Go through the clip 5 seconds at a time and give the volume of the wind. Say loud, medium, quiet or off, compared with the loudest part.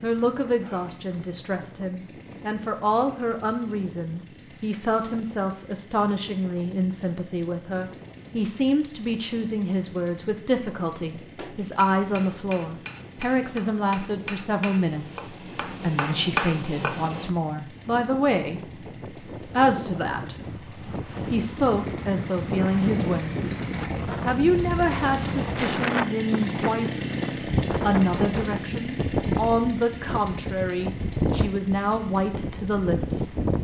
quiet, quiet, quiet, medium, loud, loud, loud.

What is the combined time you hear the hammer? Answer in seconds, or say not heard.
6 s.